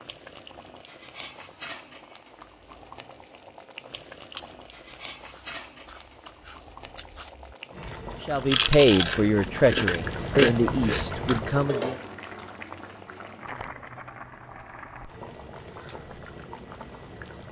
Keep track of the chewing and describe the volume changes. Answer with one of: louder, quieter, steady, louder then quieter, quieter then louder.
quieter then louder.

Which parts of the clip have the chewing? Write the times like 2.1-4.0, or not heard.
3.8-11.4.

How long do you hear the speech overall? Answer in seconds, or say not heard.
4 s.